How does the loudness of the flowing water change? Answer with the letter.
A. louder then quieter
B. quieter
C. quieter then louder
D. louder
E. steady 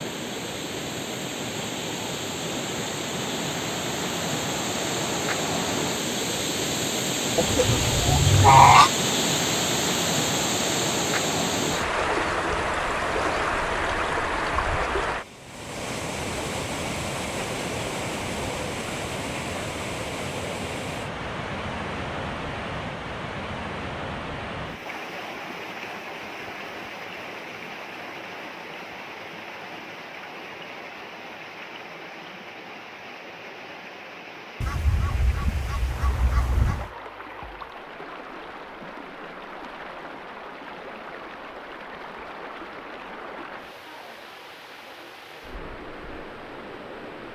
B.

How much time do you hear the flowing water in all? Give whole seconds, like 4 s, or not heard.
47 s.